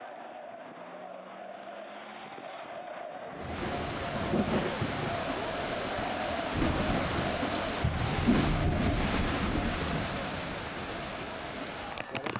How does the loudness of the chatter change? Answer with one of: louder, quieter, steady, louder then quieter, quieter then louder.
louder then quieter.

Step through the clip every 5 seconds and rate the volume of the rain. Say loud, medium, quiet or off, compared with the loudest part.
loud, loud, medium.